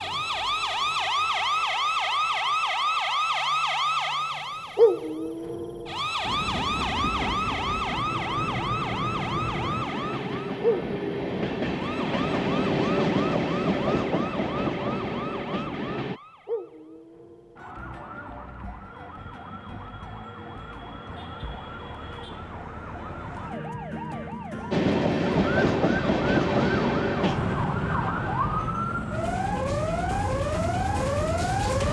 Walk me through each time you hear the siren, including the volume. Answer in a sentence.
You can hear the siren from 0.0 to 31.8 s, getting quieter then louder.